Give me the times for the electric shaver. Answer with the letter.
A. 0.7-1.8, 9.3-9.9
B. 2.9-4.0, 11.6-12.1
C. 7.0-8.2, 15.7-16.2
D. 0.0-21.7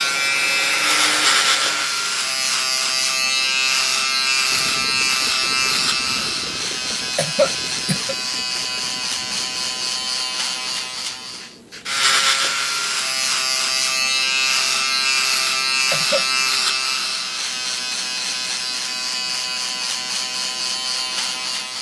D.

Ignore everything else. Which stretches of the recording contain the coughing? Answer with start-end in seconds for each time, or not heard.
7.0-8.2, 15.7-16.2.